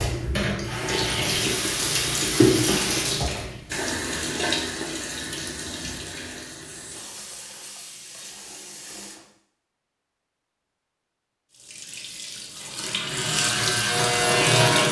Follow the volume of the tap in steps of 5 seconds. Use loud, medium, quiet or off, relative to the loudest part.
loud, quiet, loud.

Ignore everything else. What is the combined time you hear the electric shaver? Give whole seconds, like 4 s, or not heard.
2 s.